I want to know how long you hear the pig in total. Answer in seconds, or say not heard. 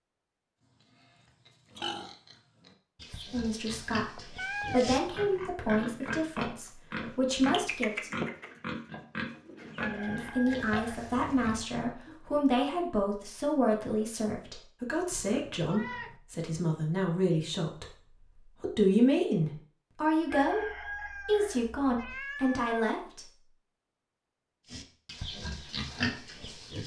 14 s.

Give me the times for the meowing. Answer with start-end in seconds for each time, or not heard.
4.2-4.9, 15.1-16.2, 21.9-22.8.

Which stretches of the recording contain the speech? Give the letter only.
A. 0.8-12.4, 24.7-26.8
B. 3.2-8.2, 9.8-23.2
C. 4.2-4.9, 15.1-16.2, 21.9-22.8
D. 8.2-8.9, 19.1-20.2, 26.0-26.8
B.